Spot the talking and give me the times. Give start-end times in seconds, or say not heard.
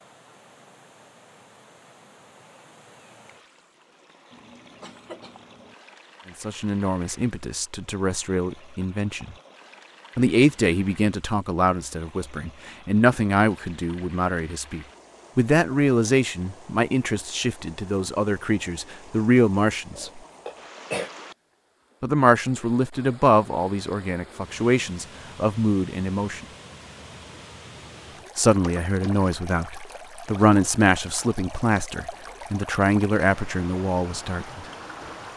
6.4-9.3, 10.2-20.2, 22.0-26.4, 28.4-34.6.